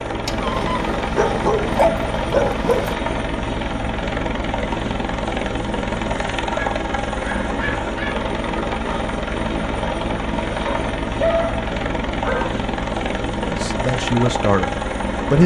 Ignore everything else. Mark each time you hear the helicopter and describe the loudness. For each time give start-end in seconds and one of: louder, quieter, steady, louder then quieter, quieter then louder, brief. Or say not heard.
0.0-15.4 steady.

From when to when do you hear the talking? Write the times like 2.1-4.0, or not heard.
13.5-15.4.